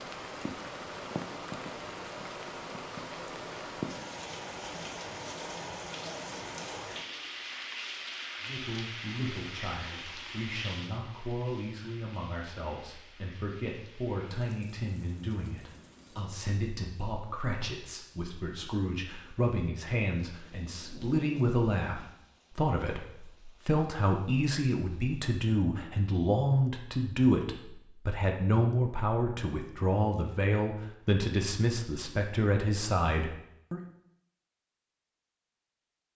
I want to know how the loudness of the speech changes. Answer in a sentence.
The loudness of the speech goes up.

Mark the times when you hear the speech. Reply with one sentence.
The speech can be heard from 8.4 to 33.8 s.